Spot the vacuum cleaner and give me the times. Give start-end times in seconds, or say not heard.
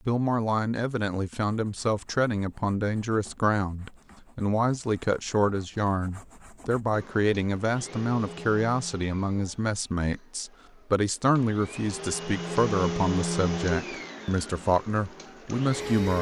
6.9-16.1.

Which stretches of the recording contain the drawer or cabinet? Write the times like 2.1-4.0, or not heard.
not heard.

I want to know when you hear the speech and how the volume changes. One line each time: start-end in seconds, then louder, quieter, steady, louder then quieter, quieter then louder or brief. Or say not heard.
0.1-16.1 steady.